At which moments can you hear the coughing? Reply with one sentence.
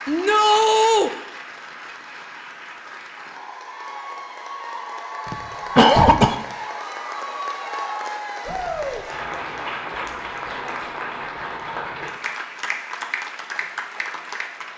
The coughing can be heard from 5.2 to 6.3 s.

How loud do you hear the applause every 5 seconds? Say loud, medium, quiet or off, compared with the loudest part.
medium, loud, loud.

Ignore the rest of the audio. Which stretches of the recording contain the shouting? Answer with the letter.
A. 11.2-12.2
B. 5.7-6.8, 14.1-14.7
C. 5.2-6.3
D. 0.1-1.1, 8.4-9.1
D.